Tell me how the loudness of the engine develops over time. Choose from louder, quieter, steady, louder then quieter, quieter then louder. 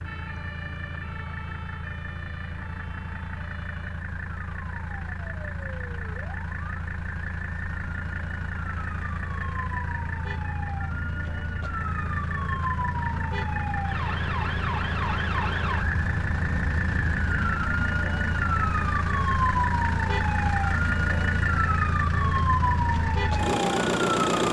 louder.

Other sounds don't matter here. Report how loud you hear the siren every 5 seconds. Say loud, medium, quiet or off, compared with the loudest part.
quiet, quiet, medium, loud, loud.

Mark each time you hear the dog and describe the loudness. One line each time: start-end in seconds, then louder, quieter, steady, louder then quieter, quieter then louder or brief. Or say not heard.
not heard.